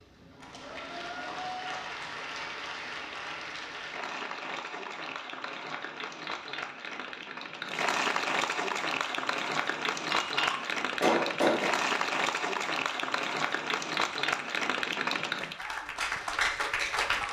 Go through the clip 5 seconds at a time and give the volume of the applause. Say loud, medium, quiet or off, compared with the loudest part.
medium, loud, loud, loud.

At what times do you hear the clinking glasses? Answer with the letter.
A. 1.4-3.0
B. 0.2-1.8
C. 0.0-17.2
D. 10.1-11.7
D.